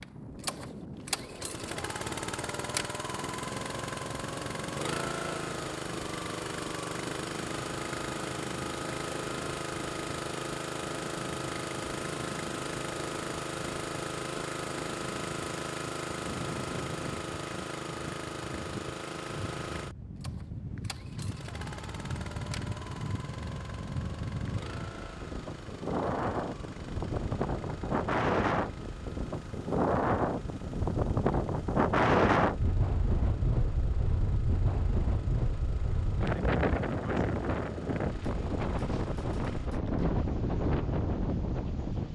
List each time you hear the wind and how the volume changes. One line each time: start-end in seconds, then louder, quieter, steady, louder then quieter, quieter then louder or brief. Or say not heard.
0.0-42.1 louder.